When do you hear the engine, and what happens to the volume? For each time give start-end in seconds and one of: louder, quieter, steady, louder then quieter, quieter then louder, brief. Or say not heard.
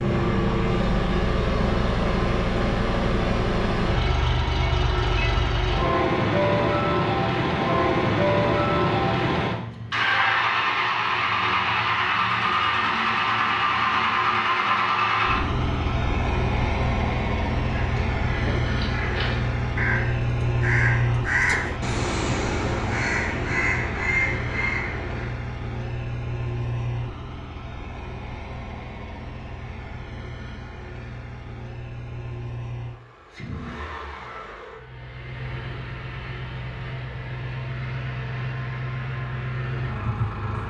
0.0-40.6 quieter.